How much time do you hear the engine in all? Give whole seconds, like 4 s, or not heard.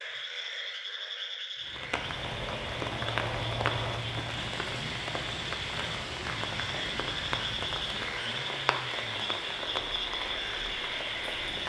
10 s.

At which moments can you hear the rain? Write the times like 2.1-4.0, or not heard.
1.6-11.6.